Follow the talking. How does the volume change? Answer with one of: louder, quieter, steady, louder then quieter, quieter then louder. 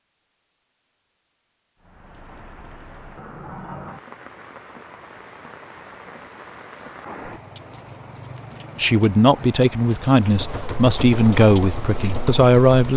steady.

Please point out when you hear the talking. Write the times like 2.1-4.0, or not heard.
8.8-12.9.